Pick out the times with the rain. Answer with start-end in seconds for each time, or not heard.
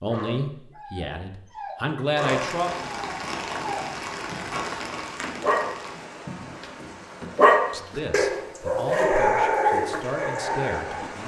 2.1-11.2.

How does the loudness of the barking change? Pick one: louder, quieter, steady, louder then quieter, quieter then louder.
louder then quieter.